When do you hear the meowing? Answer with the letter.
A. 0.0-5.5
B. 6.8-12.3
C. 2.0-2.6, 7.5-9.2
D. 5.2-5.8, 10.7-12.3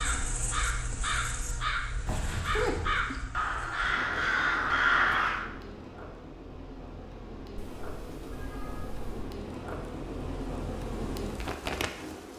C.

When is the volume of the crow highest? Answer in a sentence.
The volume of the crow peaks at 5 seconds.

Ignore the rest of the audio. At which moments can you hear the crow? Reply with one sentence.
The crow can be heard from 0.0 to 5.5 s.